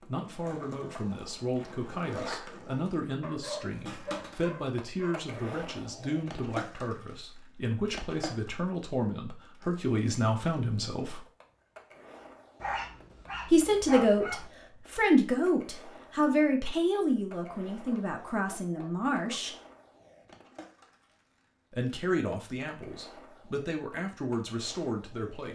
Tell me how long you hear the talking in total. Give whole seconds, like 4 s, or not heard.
21 s.